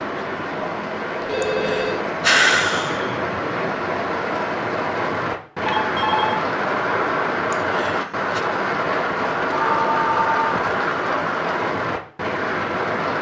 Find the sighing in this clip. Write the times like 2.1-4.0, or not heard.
1.4-3.2, 7.5-8.4.